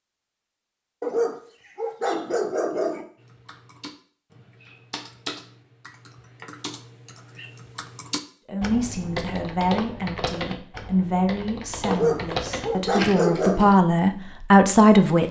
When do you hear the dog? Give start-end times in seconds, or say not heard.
1.0-3.0, 11.8-13.7.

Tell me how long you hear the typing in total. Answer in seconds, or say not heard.
10 s.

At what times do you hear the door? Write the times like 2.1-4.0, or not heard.
not heard.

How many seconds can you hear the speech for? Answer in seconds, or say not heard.
7 s.